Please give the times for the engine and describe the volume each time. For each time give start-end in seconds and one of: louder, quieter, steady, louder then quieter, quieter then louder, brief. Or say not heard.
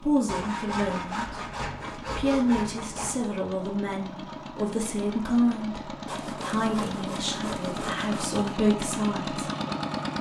0.0-10.1 louder.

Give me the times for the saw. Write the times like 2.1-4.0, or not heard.
0.2-3.2, 6.0-8.4.